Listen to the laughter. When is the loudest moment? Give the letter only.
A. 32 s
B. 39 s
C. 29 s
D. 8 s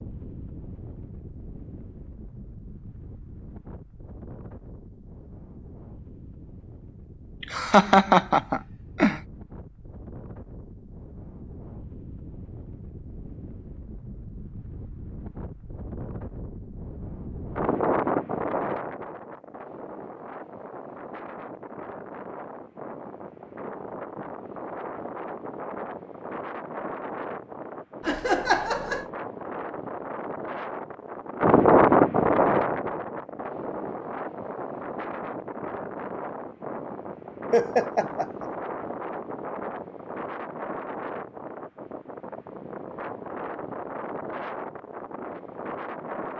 D.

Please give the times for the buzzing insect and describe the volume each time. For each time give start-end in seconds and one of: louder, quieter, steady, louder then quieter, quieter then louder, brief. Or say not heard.
not heard.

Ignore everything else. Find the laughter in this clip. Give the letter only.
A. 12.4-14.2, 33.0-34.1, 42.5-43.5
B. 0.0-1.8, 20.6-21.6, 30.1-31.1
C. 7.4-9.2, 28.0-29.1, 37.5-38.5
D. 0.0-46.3
C.